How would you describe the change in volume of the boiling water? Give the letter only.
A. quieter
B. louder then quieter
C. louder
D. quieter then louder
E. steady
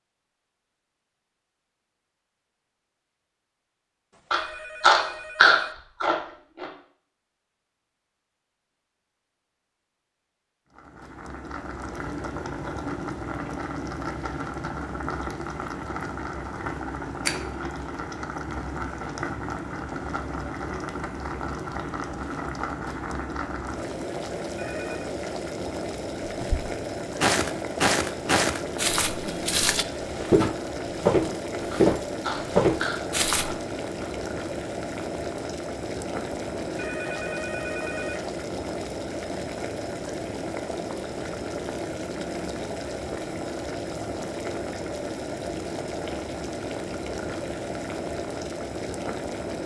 E.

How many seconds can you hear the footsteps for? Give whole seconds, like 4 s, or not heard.
7 s.